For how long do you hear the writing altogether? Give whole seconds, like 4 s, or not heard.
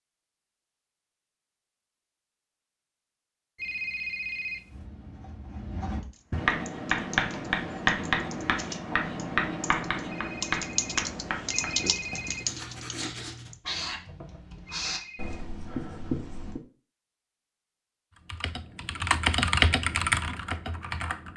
12 s.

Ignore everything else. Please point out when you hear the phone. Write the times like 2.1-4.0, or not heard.
3.5-4.8, 10.1-12.4, 14.7-15.4.